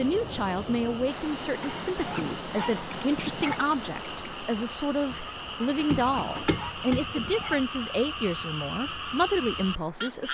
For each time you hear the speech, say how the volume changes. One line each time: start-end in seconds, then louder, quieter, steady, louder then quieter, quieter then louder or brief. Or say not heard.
0.0-10.2 steady.